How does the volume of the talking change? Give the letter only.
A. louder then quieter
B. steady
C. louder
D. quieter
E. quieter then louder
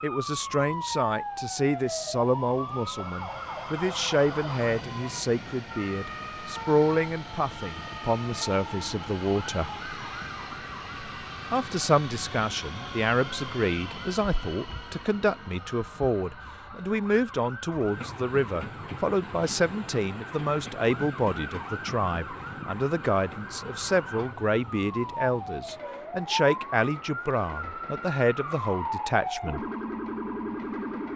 B.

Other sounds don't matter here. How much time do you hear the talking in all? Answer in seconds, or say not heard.
28 s.